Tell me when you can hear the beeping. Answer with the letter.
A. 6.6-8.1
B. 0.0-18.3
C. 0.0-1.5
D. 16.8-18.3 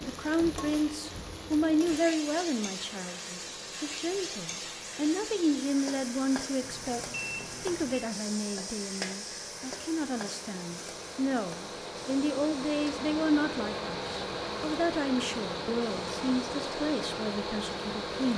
A.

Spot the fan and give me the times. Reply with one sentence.
The fan can be heard from 0.0 to 18.3 s.